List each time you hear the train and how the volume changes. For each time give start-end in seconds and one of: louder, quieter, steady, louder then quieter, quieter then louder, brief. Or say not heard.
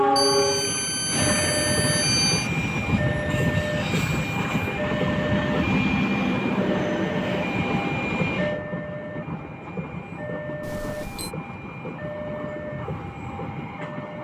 0.0-14.1 quieter.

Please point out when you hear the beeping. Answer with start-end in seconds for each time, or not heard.
0.1-2.5, 10.6-11.3.